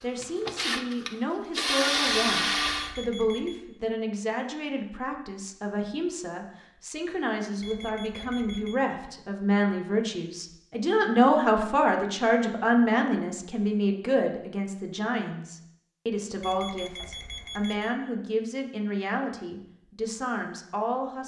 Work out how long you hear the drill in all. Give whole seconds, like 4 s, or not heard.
3 s.